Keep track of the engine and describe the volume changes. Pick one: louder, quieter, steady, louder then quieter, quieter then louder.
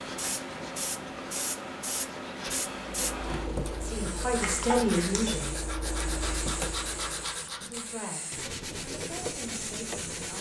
quieter then louder.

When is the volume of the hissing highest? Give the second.
3 s.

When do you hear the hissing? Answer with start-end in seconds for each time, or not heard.
0.0-10.3.